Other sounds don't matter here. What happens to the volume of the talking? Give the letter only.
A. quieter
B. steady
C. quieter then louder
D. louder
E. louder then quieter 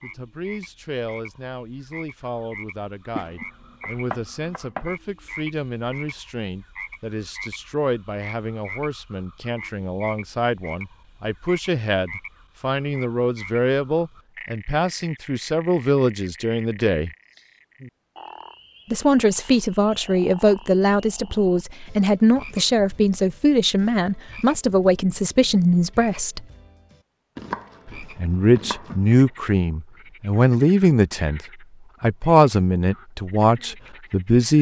D.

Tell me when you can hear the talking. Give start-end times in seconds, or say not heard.
0.0-17.1, 18.9-26.4, 27.9-34.5.